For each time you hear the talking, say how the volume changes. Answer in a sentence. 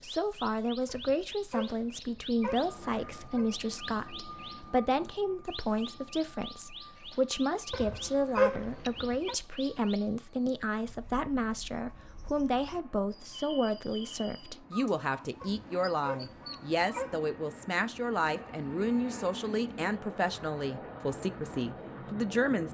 You can hear the talking from 0.0 to 22.7 s, at a steady volume.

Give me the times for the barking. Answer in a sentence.
You can hear the barking from 0.8 to 3.5 s, from 7.7 to 9.3 s and from 15.4 to 17.3 s.